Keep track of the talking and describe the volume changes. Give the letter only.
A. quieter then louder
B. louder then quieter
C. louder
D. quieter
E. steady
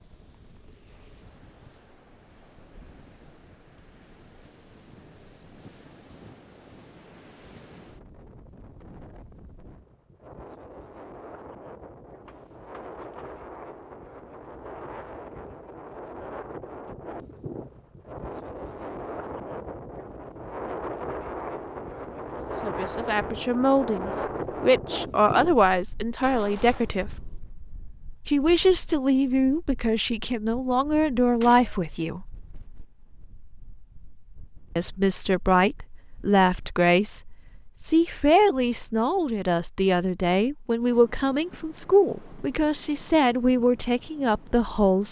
E.